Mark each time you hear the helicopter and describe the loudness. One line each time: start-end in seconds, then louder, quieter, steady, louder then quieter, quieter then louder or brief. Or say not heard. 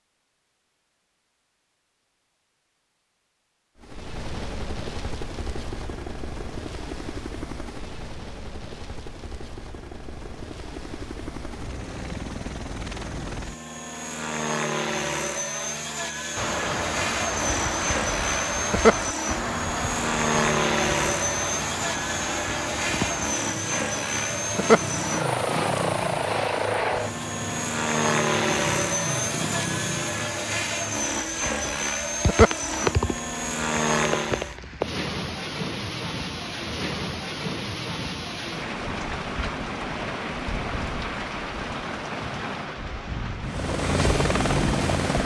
3.8-34.5 louder
43.5-45.2 brief.